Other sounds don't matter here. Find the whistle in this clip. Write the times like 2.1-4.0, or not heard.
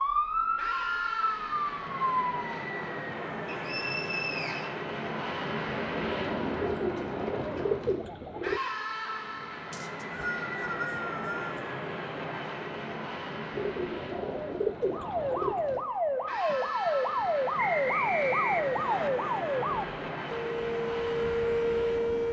3.5-4.7, 9.7-11.6, 17.6-19.1.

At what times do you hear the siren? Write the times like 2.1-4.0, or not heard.
0.0-2.6, 14.7-22.2.